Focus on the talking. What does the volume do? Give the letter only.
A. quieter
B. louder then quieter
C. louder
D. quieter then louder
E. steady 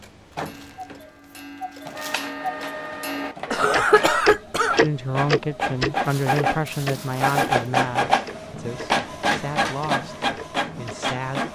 A.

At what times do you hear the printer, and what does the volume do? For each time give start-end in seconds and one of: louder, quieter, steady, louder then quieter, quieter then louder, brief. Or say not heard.
0.0-11.4 louder.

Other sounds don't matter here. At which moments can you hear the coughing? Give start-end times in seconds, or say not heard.
3.5-4.8.